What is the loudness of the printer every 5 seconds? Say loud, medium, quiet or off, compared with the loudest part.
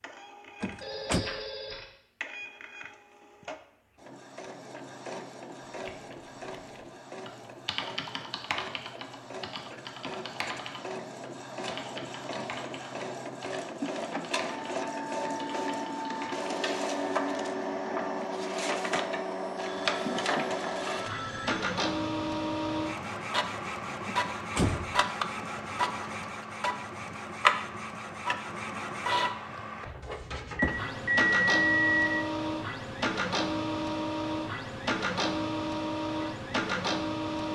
quiet, quiet, medium, loud, loud, loud, loud, loud.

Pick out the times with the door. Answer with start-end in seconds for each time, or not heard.
0.6-1.2, 24.1-25.0.